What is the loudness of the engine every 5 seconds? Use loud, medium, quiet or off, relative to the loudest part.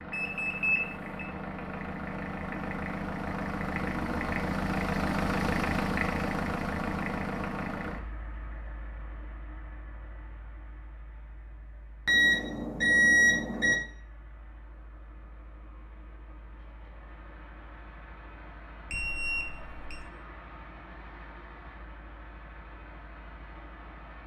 loud, loud, quiet, quiet, quiet.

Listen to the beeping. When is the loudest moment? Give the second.
13 s.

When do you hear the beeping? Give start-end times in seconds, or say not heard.
0.1-1.3, 12.1-13.8, 18.9-20.0.